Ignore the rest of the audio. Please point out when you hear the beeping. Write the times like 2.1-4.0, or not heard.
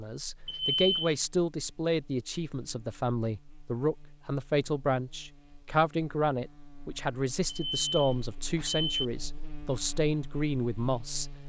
0.5-1.1, 7.5-9.1.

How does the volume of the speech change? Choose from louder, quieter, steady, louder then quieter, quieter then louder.
steady.